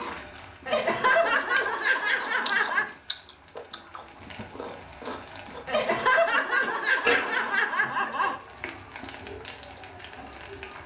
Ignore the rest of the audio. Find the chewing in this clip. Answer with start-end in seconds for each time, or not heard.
1.1-6.0.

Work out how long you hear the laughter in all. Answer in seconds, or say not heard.
5 s.